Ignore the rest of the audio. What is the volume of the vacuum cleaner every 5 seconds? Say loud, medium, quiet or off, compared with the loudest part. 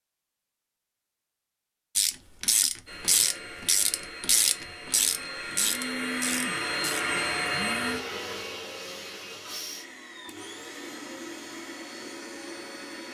medium, loud, medium.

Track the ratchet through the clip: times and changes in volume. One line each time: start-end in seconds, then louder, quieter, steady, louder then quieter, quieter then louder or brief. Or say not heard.
1.9-7.0 quieter.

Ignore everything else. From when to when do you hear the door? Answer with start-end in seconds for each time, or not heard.
not heard.